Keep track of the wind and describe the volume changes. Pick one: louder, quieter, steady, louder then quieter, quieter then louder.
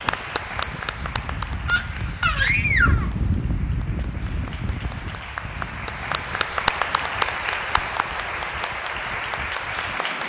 louder then quieter.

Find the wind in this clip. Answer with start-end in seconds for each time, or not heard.
0.0-10.2.